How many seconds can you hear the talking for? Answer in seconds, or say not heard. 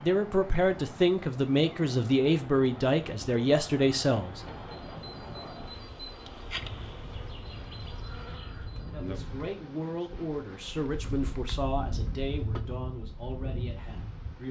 10 s.